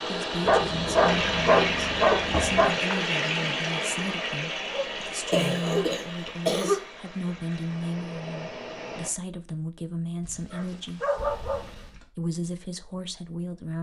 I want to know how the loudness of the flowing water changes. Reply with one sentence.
The loudness of the flowing water goes down.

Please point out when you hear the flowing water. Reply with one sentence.
The flowing water can be heard from 0.0 to 9.1 s.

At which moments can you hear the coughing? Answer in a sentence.
You can hear the coughing from 2.3 to 3.0 s, from 5.3 to 6.8 s and from 11.2 to 12.0 s.